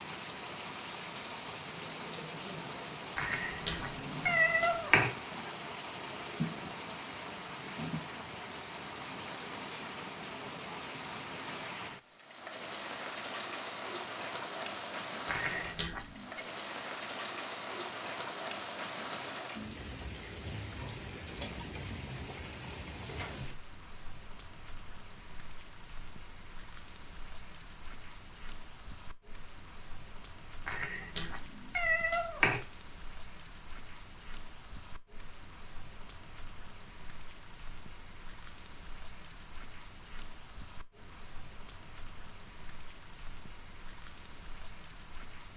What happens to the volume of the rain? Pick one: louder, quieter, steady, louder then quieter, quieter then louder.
quieter.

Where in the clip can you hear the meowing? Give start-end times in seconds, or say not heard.
3.1-5.1, 15.2-16.4, 30.6-32.6.